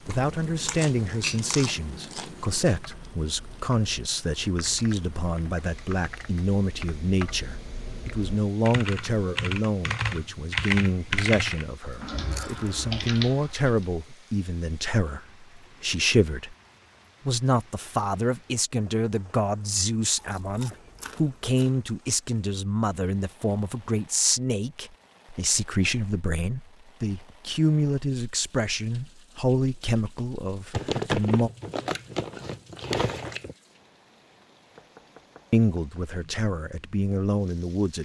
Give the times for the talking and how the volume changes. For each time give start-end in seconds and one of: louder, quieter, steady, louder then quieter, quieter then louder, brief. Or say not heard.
0.1-16.6 steady
17.2-31.5 steady
35.5-38.0 brief.